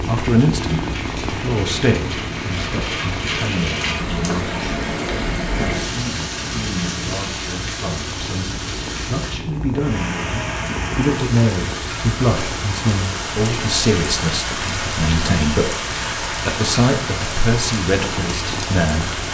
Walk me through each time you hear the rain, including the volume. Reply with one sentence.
The rain can be heard from 0.0 to 19.3 s, at a steady volume.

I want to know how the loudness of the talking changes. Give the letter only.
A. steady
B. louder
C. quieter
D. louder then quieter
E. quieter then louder
E.